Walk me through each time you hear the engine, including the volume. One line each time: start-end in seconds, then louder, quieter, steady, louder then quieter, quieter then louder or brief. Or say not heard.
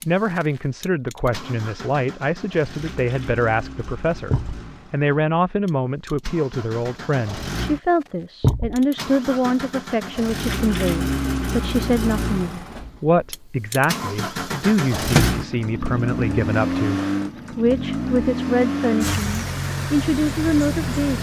0.0-21.1 louder.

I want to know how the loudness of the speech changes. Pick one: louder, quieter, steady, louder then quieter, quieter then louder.
steady.